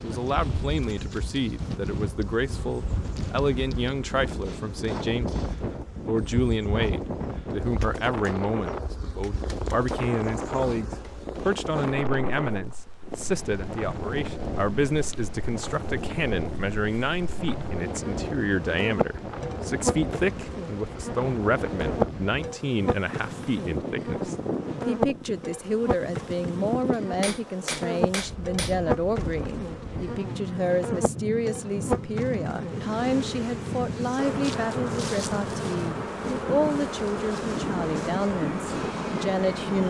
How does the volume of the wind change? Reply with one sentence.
The loudness of the wind stays about the same.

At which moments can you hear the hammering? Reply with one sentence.
The hammering can be heard from 4.4 to 5.7 s and from 26.9 to 28.8 s.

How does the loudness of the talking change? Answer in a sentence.
The loudness of the talking stays about the same.